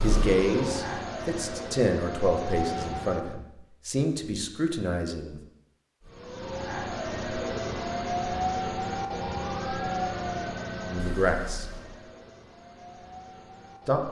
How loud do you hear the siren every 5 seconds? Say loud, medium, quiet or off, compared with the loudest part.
loud, loud, medium.